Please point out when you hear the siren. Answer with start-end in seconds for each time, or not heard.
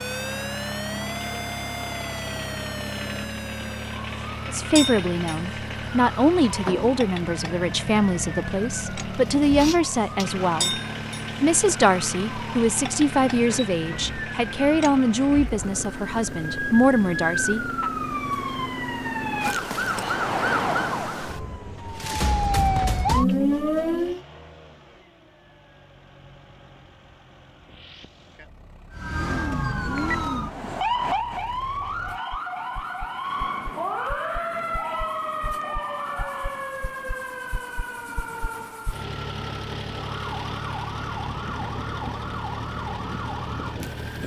0.0-24.2, 28.9-44.2.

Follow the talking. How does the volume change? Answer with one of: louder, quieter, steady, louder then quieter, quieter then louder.
steady.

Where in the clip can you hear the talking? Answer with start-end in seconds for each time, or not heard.
4.5-10.8, 11.4-17.9.